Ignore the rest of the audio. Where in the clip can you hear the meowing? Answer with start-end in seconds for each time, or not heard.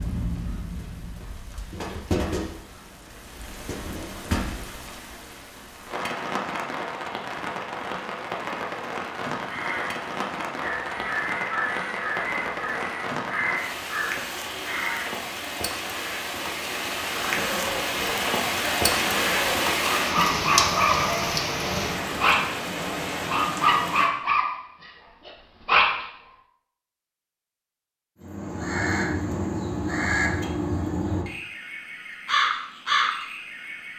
not heard.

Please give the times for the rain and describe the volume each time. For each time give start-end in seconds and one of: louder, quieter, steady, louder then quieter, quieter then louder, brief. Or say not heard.
0.0-24.1 louder.